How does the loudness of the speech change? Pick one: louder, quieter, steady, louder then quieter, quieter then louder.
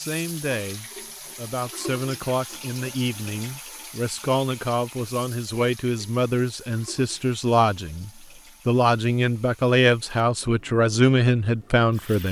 louder.